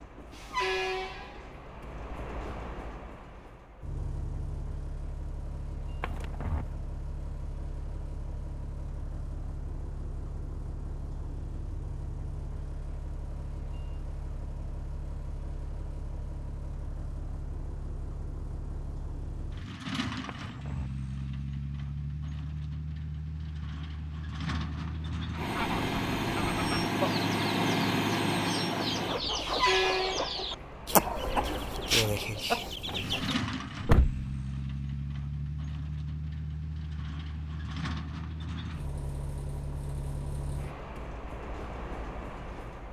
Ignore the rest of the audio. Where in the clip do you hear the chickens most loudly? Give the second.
31 s.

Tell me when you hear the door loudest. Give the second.
34 s.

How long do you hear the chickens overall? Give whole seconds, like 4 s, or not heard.
8 s.